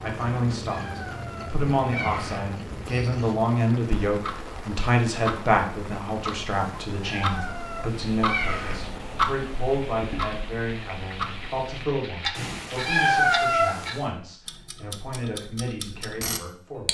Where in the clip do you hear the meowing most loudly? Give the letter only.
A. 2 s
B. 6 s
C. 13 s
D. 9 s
C.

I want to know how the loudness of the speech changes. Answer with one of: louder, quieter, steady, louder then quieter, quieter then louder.
quieter.